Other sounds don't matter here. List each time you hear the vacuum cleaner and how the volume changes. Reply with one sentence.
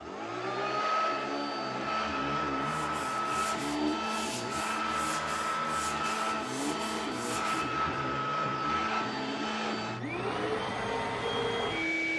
The vacuum cleaner can be heard from 0.0 to 12.1 s, at a steady volume.